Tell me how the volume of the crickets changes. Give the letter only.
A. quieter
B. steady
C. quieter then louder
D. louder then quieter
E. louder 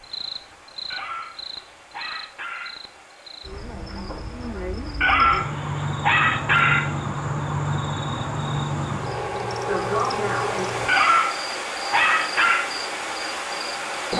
D.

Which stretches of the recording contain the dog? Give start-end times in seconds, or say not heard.
0.9-2.8, 5.0-6.9, 10.8-12.7.